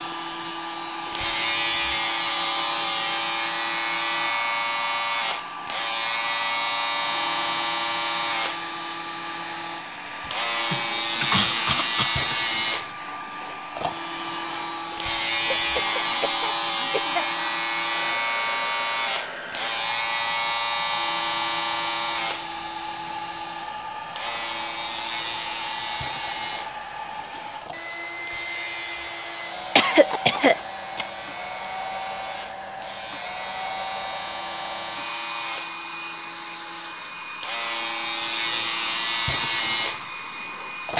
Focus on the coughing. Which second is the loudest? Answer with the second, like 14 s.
30 s.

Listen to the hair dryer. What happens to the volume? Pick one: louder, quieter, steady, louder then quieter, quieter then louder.
steady.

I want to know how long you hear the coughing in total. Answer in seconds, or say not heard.
5 s.